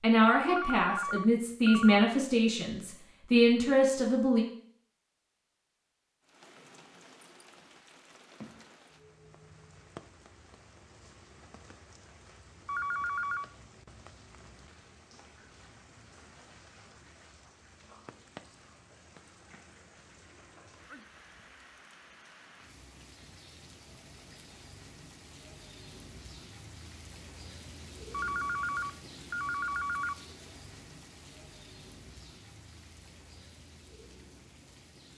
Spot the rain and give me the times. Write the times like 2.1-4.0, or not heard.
6.2-35.1.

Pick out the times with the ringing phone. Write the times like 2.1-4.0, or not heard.
0.5-2.0, 12.7-13.4, 28.1-30.1.